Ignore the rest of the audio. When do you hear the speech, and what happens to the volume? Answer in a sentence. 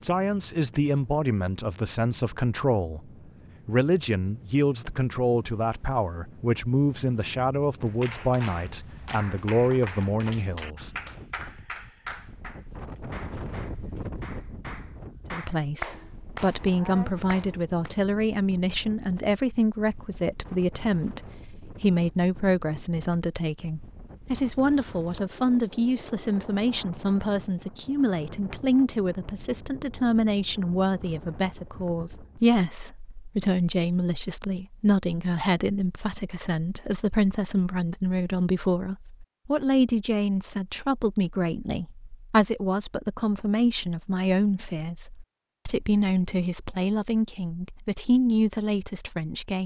You can hear the speech from 0.0 to 10.9 s, at a steady volume; and from 15.3 to 49.6 s, at a steady volume.